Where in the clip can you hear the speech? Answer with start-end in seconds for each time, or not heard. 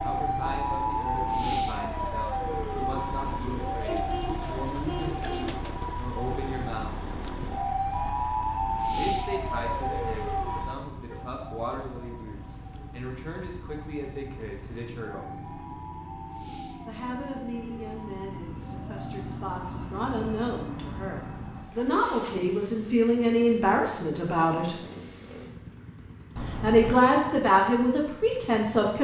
0.0-7.0, 8.9-15.3, 16.9-24.8, 26.6-28.9.